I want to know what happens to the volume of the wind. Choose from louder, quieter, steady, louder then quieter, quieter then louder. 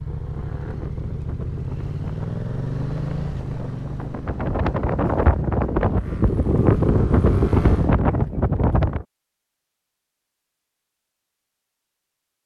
louder.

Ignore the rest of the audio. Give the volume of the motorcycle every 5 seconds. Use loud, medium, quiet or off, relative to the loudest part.
loud, medium, off.